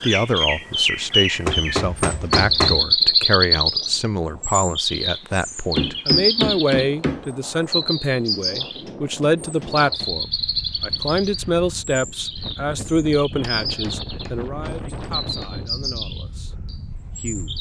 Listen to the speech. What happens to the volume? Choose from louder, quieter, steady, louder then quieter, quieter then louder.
quieter.